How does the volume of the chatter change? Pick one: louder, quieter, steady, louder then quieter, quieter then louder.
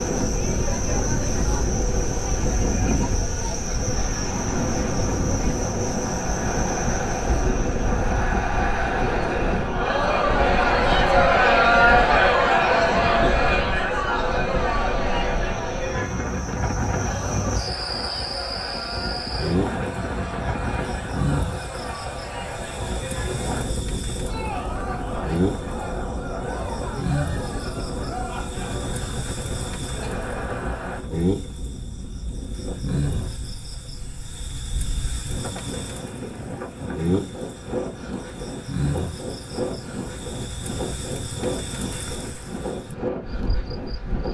louder then quieter.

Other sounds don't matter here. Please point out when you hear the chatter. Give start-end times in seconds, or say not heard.
0.1-31.0.